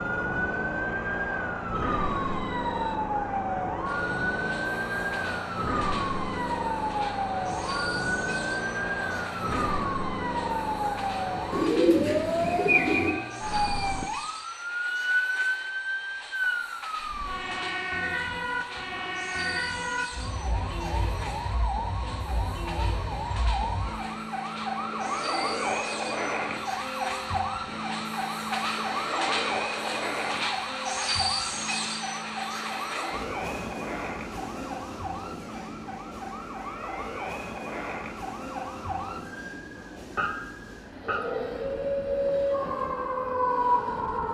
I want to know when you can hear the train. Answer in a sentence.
You can hear the train from 0.0 to 44.3 s.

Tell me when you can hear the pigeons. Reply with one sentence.
You can hear the pigeons from 11.5 to 13.2 s.